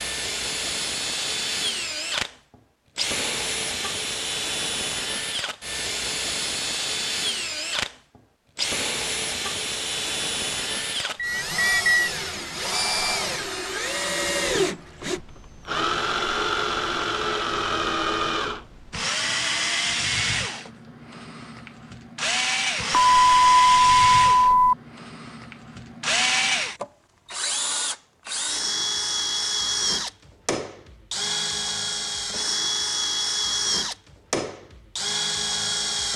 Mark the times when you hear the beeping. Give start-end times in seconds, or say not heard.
11.2-12.1, 22.9-24.8.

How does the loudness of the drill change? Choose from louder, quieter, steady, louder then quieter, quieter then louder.
steady.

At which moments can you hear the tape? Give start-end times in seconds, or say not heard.
not heard.